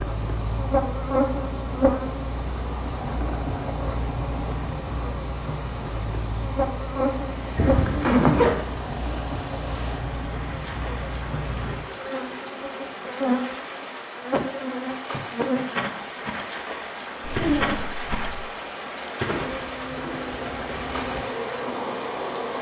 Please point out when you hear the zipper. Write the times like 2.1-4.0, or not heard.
7.5-8.7, 17.2-18.4.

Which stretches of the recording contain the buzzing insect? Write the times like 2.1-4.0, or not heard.
0.0-22.5.